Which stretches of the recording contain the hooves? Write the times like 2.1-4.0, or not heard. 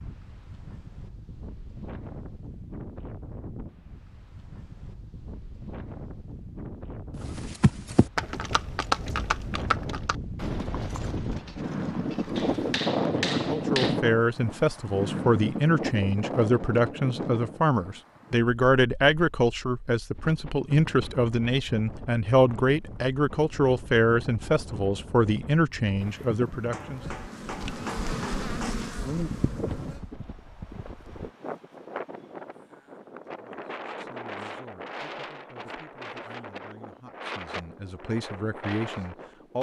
7.1-12.8, 29.1-31.3.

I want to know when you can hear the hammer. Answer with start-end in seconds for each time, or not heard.
12.3-14.0, 26.7-28.8.